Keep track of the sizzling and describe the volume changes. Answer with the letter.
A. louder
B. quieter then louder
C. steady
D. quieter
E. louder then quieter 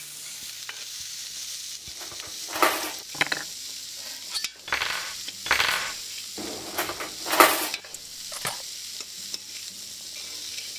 C.